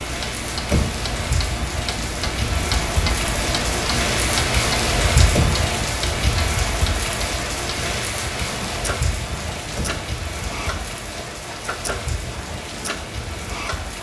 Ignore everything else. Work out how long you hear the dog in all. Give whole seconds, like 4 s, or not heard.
not heard.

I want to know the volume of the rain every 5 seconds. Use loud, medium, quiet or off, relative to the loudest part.
loud, loud, medium.